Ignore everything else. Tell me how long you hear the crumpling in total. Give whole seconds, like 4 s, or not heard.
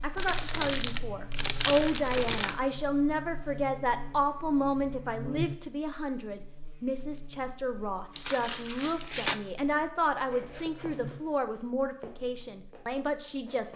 4 s.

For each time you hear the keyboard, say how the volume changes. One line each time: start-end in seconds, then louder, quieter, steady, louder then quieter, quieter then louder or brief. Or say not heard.
not heard.